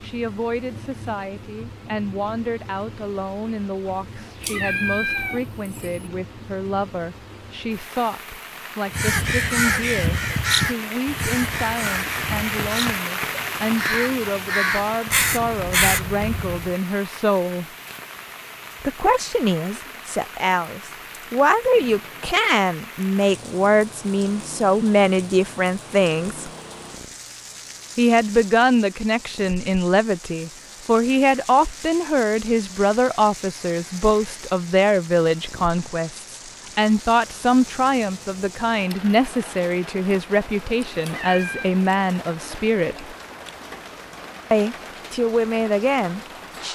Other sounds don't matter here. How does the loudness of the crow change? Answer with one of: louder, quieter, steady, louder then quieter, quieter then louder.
quieter then louder.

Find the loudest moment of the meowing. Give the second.
5 s.